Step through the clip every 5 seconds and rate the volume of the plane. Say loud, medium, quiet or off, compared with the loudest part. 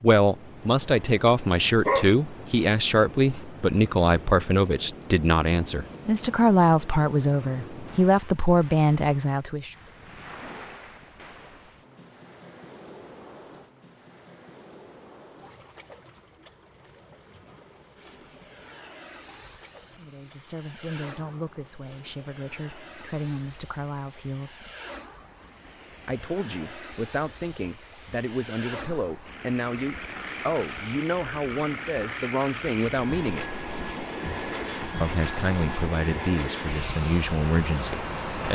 off, off, off, quiet, quiet, medium, loud, loud.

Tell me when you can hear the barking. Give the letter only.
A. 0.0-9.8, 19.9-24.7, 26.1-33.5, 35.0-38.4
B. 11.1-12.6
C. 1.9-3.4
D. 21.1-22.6
C.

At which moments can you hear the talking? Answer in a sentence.
You can hear the talking from 0.0 to 9.8 s, from 19.9 to 24.7 s, from 26.1 to 33.5 s and from 35.0 to 38.4 s.